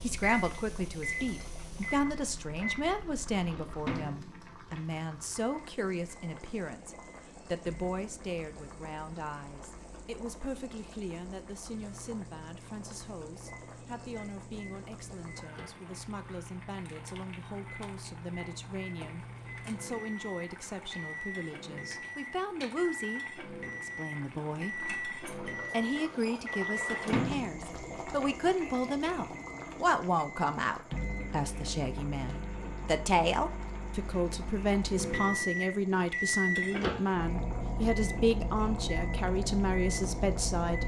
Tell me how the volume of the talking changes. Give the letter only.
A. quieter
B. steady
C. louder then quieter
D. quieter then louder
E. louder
D.